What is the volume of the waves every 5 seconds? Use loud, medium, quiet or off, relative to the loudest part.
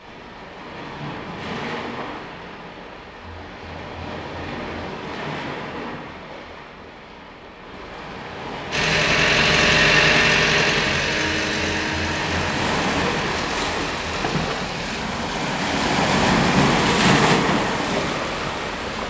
quiet, quiet, medium, loud.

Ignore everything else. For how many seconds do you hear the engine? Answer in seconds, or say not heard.
6 s.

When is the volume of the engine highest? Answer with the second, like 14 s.
10 s.